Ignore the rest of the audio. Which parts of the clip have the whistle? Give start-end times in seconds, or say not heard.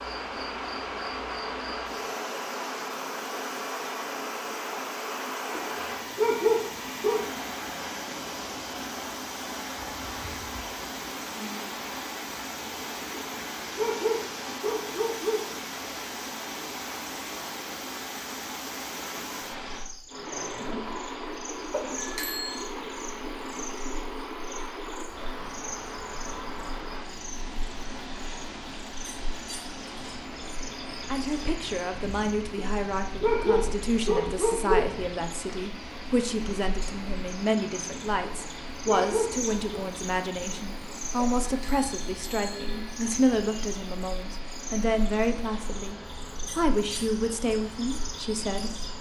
not heard.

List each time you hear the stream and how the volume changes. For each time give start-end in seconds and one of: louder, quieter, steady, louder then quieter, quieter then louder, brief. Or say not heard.
0.0-48.9 quieter.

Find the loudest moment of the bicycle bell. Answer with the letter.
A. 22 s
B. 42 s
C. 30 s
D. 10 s
A.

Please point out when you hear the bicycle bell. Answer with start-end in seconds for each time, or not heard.
21.7-22.7, 41.4-43.2.